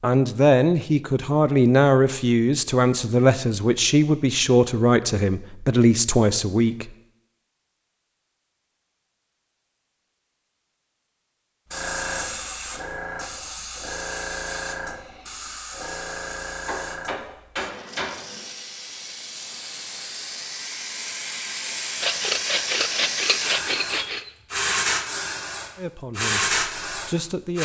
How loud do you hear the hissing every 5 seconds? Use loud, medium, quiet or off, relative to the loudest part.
off, off, medium, medium, loud, loud.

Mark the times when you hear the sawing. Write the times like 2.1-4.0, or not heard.
22.0-24.3.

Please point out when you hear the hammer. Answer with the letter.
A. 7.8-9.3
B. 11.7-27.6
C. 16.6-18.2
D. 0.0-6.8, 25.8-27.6
C.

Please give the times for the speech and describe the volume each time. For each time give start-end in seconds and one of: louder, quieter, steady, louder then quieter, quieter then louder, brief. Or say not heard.
0.0-6.8 steady
25.8-27.6 brief.